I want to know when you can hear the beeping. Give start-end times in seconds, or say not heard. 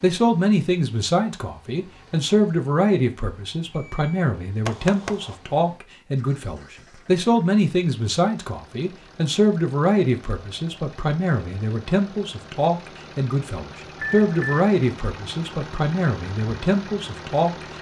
3.8-5.3, 13.9-14.7.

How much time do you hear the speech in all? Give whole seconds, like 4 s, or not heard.
18 s.